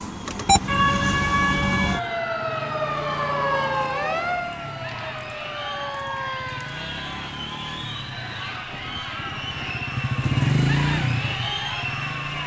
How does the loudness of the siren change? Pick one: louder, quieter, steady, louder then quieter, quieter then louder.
quieter.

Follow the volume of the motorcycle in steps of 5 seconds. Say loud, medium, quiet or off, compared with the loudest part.
quiet, quiet, loud.